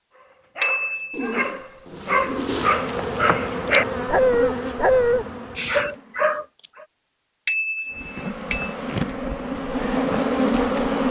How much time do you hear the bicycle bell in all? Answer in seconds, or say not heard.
2 s.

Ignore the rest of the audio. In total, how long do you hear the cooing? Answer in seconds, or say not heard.
2 s.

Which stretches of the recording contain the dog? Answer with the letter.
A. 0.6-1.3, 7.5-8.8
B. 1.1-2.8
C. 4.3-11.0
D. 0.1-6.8
D.